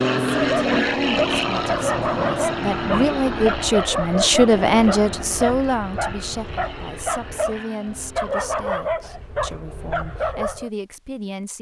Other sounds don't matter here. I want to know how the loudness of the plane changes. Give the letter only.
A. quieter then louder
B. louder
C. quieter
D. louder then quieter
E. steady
C.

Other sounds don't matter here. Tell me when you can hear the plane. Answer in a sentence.
You can hear the plane from 0.0 to 8.7 s.